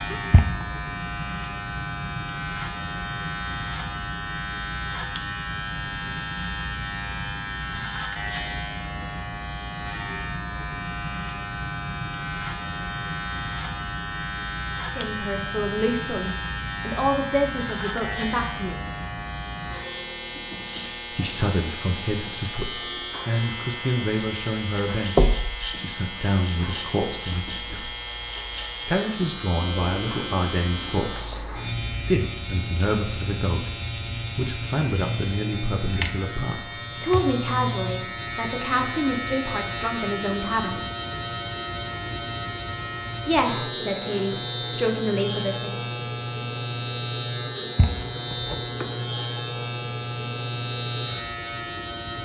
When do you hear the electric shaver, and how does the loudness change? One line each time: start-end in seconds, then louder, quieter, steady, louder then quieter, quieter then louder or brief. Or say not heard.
0.0-52.2 steady.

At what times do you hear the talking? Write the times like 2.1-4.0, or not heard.
14.8-18.8, 21.1-27.9, 28.8-33.8, 34.4-40.8, 43.2-45.8.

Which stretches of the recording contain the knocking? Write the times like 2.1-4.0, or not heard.
0.1-0.7, 25.1-25.6, 47.5-48.9.